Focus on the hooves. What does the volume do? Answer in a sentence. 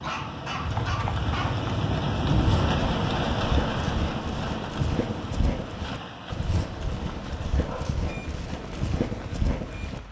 The loudness of the hooves stays about the same.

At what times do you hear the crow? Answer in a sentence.
The crow can't be heard in this clip.